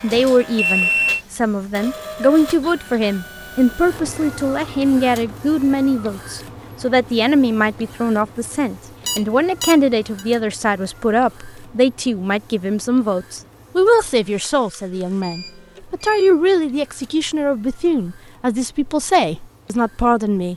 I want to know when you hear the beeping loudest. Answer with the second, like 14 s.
1 s.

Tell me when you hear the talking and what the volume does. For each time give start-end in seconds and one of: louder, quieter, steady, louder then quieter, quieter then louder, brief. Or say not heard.
0.0-20.5 steady.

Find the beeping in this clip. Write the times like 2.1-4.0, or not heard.
0.1-1.2, 9.1-10.2, 15.2-16.4.